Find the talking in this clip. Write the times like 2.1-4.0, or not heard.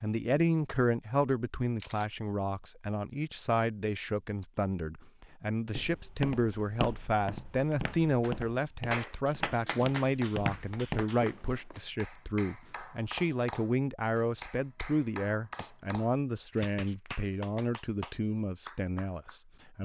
0.0-19.7.